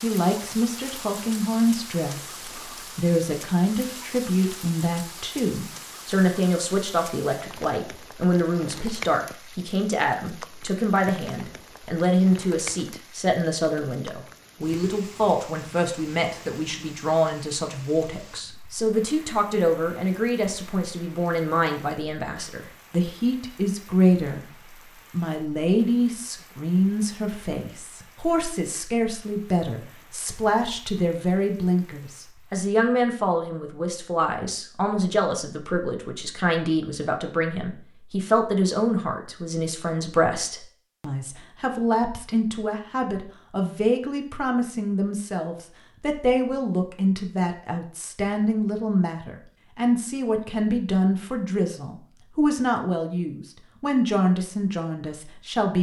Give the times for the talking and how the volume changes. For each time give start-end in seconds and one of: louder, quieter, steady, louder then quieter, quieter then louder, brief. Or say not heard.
0.0-24.4 steady
25.1-55.7 steady.